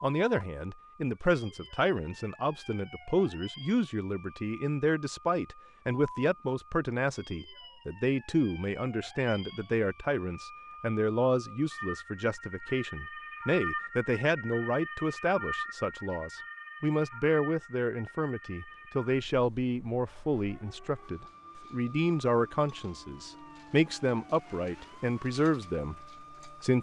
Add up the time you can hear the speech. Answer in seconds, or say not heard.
27 s.